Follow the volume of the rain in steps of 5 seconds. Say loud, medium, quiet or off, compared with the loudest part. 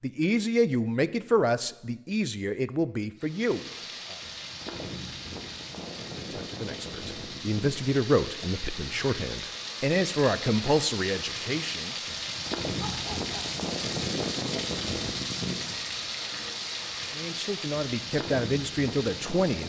medium, medium, loud, loud.